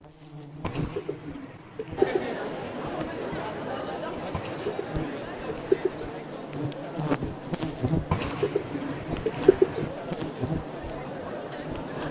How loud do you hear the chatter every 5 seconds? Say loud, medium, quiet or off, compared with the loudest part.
loud, medium, loud.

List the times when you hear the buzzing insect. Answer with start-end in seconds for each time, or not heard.
0.0-12.0.